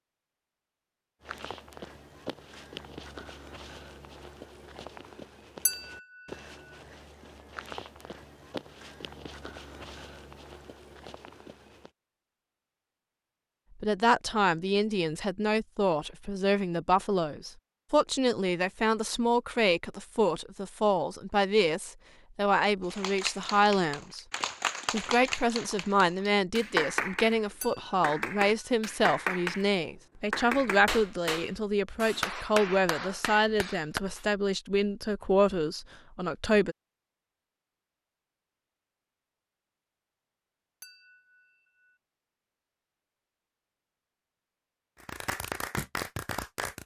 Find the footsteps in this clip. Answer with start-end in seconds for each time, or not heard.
1.2-11.9.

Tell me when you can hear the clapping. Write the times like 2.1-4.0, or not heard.
22.9-27.4, 28.0-29.7, 30.3-34.2, 45.0-46.8.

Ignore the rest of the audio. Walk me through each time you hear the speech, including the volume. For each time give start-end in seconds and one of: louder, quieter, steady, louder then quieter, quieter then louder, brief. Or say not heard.
13.8-24.2 steady
24.9-36.8 steady.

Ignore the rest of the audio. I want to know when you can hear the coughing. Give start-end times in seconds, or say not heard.
not heard.